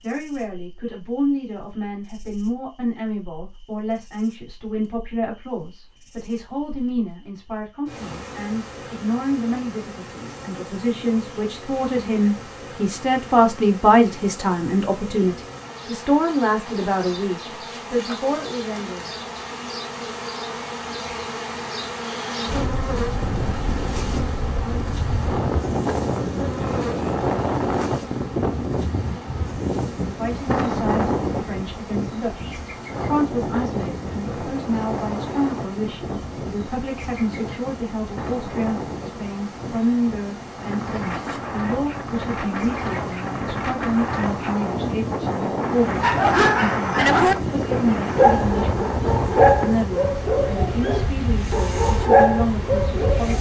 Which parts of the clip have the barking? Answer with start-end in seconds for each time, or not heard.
46.0-53.3.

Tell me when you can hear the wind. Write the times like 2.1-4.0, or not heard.
22.4-53.3.